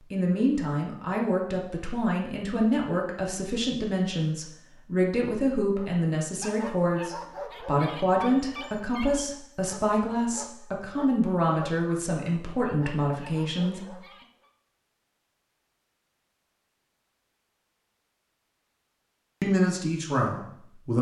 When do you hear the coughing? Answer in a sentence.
You can't hear the coughing here.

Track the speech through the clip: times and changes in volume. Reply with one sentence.
The speech can be heard from 0.1 to 13.9 s, at a steady volume; and briefly from 19.4 to 20.9 s.